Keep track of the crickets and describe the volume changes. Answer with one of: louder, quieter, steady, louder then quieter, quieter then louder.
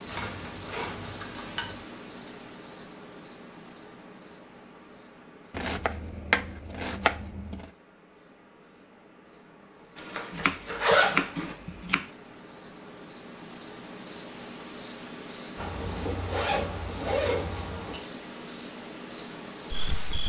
quieter then louder.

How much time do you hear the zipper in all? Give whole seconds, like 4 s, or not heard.
6 s.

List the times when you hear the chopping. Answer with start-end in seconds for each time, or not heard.
5.5-7.7, 10.3-12.1.